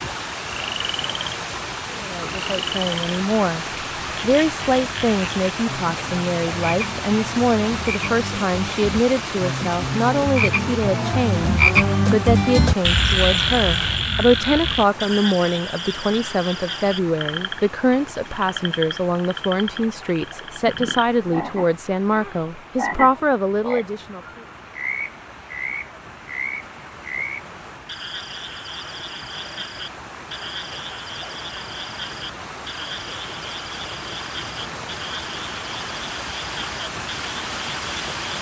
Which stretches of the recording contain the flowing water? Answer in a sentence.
You can hear the flowing water from 0.0 to 38.3 s.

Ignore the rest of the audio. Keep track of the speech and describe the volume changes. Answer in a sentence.
The volume of the speech stays about the same.